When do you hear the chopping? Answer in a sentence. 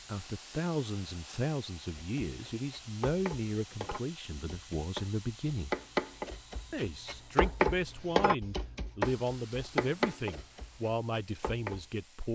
You can hear the chopping from 1.9 to 11.9 s.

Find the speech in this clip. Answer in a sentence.
You can hear the speech from 0.1 to 5.8 s and from 6.7 to 12.3 s.